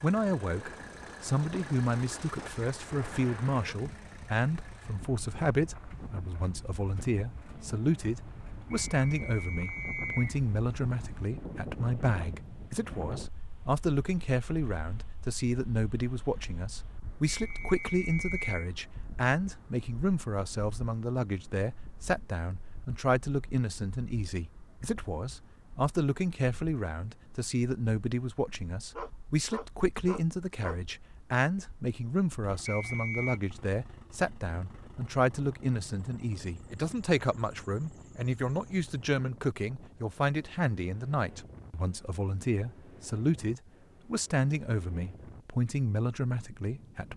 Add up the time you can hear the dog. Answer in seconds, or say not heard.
2 s.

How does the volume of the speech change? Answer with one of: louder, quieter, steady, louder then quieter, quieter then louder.
steady.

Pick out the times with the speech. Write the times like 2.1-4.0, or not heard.
0.0-47.1.